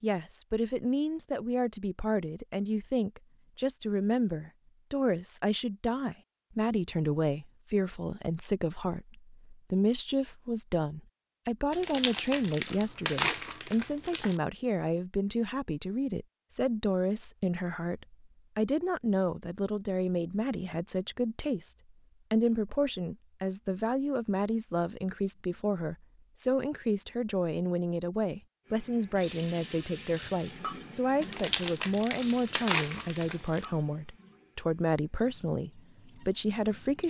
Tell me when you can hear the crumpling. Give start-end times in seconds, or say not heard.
11.7-14.4, 31.2-33.6.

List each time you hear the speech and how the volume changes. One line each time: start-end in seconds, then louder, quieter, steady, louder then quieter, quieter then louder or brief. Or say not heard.
0.0-37.0 steady.